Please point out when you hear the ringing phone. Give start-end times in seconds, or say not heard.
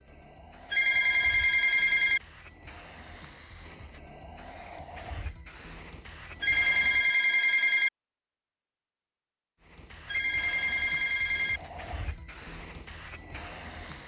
0.7-2.2, 6.4-7.9, 10.1-11.6.